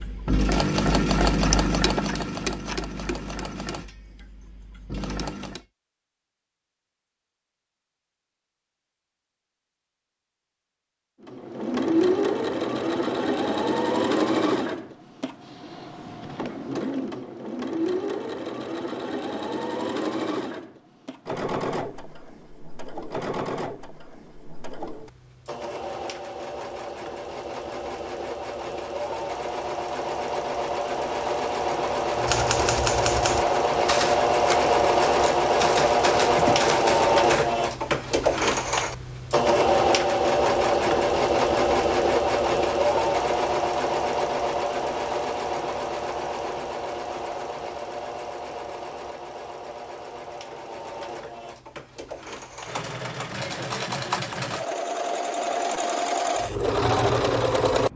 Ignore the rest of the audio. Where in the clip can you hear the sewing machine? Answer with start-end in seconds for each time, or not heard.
0.0-5.7, 11.2-57.9.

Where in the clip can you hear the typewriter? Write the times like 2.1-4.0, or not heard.
32.1-37.5.